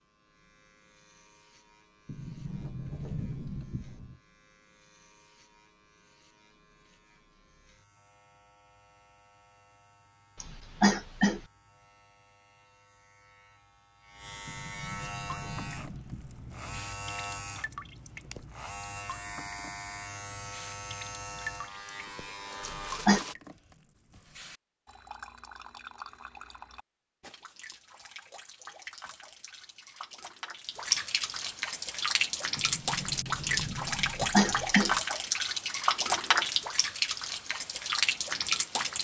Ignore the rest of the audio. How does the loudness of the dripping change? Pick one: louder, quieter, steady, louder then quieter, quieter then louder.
louder.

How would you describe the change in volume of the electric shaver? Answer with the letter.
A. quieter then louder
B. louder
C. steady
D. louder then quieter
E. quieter
B.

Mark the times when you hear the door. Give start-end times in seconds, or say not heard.
2.0-4.2, 14.4-16.9, 32.5-34.8.